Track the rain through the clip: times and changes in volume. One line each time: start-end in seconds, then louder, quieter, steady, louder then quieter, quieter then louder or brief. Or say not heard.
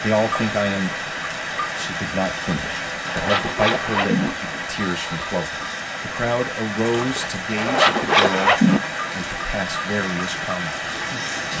0.0-11.5 steady.